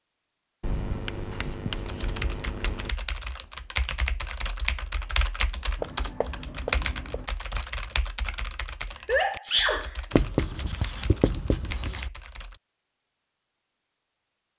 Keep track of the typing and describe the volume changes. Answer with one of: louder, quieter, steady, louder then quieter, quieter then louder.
quieter.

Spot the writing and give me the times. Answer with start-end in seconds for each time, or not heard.
0.6-2.9, 5.8-7.2, 10.1-12.1.